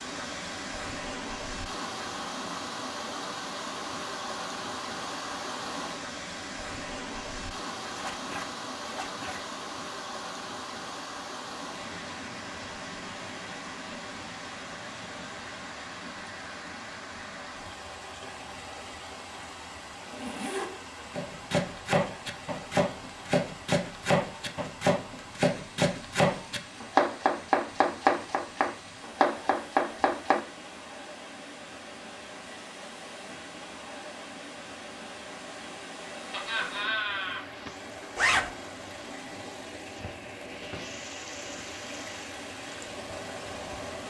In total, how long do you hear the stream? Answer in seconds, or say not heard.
44 s.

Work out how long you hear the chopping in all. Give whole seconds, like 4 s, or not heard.
9 s.